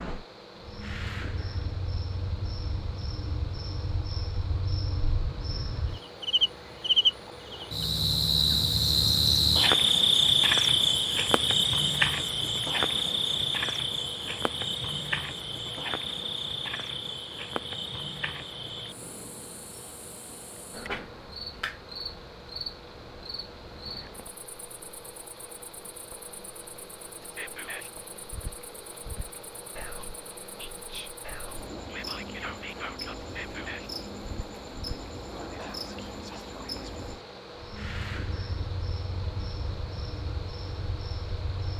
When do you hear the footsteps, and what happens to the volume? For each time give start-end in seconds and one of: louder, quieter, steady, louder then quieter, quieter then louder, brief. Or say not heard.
not heard.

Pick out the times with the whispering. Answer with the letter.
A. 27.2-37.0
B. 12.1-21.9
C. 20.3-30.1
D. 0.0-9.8
A.